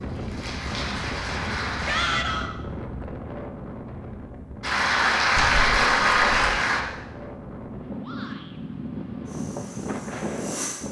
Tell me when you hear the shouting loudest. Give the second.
2 s.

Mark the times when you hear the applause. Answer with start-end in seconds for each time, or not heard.
0.0-2.0, 4.6-6.8.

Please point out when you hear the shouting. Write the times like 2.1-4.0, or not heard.
1.9-2.5, 8.0-8.6.